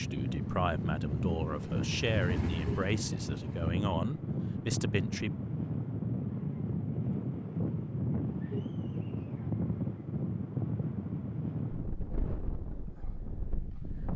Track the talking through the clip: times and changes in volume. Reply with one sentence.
The talking can be heard from 0.0 to 5.3 s, at a steady volume.